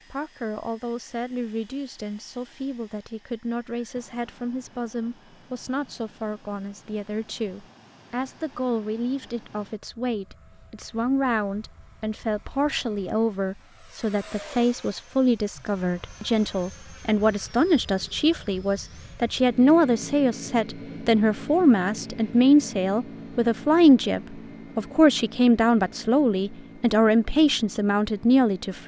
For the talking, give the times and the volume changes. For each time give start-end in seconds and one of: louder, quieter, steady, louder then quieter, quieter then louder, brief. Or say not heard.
0.1-28.8 louder.